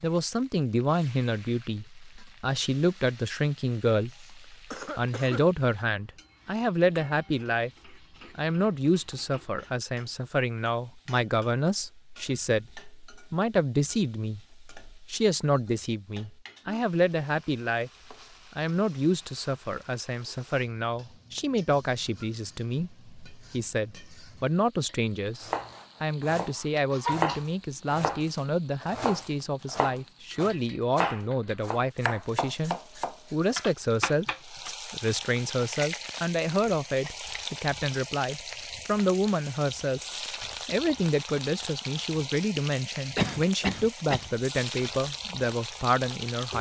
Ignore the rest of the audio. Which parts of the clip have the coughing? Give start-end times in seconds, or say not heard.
4.0-5.5, 26.9-27.4, 43.1-44.3.